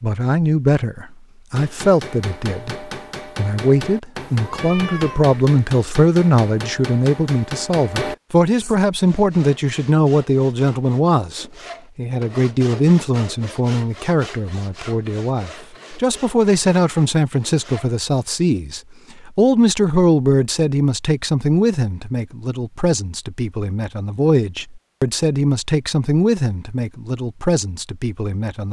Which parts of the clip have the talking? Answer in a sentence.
The talking can be heard from 0.0 to 28.6 s.